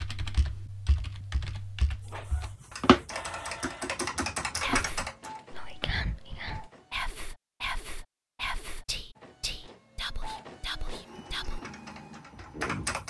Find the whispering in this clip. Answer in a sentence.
You can hear the whispering from 4.6 to 11.6 s.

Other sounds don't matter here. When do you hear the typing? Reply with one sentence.
You can hear the typing from 0.0 to 5.3 s and from 11.1 to 13.0 s.